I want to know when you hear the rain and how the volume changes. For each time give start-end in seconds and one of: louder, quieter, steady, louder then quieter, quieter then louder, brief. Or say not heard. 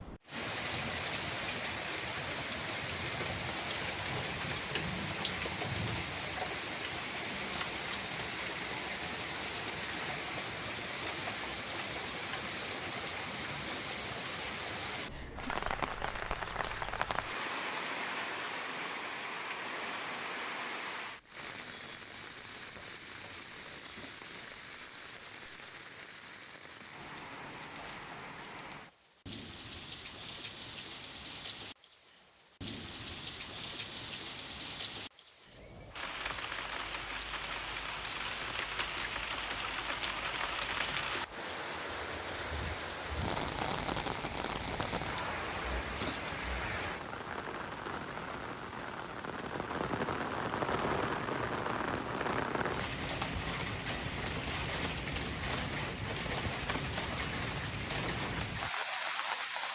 0.0-59.7 quieter then louder.